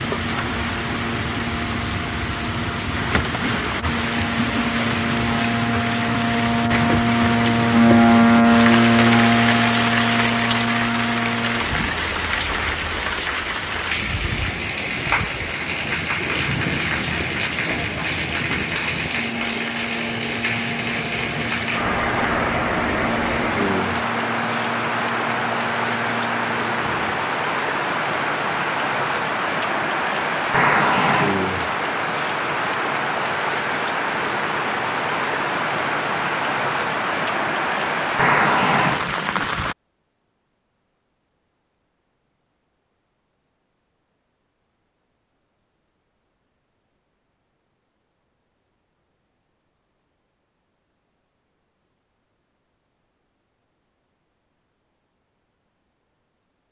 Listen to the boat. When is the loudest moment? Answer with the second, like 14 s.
8 s.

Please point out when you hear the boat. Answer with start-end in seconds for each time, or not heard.
0.0-27.3.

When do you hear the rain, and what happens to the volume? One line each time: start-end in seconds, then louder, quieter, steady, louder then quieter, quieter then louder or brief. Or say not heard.
0.0-39.8 steady.